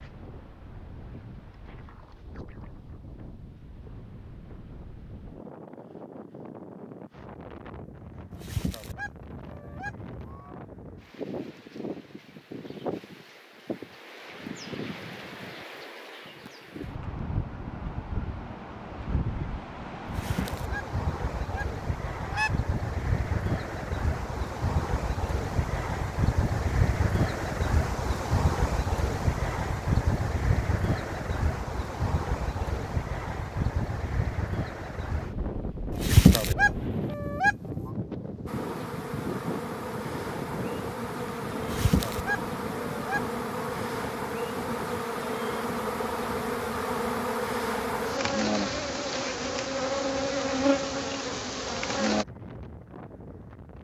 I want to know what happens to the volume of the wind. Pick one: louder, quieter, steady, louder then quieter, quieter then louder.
louder then quieter.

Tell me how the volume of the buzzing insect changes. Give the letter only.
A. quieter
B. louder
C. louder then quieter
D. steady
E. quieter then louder
B.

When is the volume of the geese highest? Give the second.
36 s.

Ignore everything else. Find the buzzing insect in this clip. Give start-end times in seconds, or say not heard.
38.5-52.2.